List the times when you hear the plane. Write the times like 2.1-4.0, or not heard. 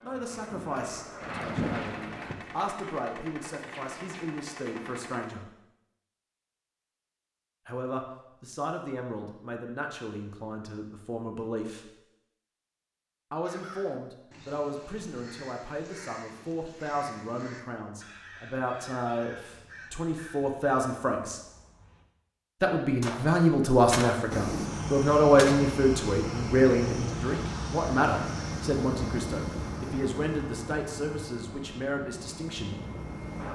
0.0-2.4, 24.3-33.4.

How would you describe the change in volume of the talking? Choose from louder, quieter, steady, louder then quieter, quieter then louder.
louder then quieter.